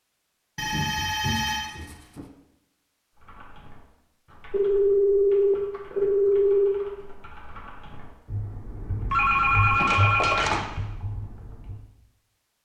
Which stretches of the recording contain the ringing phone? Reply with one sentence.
The ringing phone can be heard from 0.6 to 2.2 s, from 4.5 to 6.7 s and from 9.1 to 10.7 s.